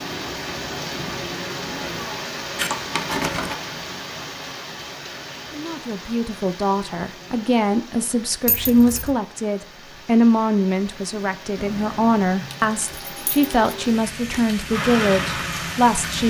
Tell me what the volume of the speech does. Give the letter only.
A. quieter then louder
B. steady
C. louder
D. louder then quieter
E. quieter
B.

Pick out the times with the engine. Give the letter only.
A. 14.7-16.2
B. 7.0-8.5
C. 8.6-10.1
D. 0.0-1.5
A.